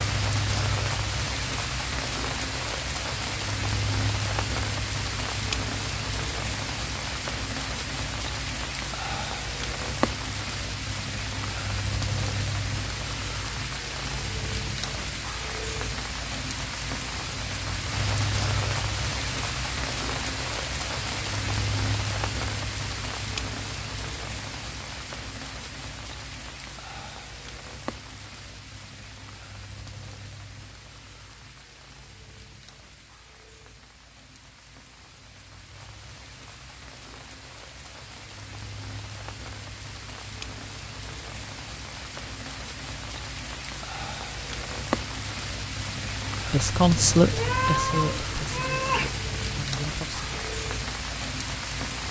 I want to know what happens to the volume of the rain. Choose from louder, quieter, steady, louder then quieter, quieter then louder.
quieter then louder.